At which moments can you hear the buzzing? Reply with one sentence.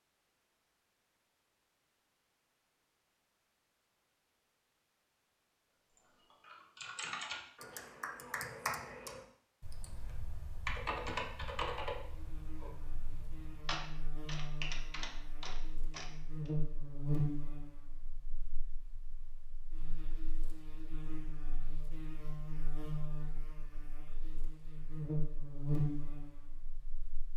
The buzzing can be heard from 12.1 to 27.3 s.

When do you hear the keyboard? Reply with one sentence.
The keyboard can be heard from 6.0 to 16.5 s.